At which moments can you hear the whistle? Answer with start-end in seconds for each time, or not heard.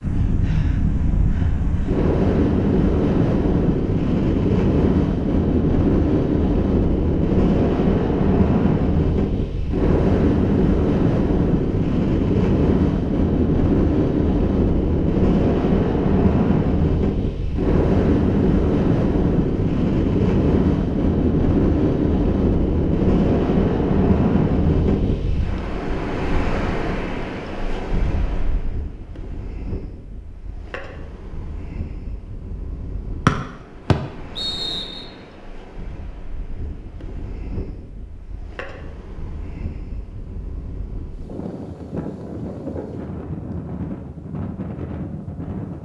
33.2-35.0.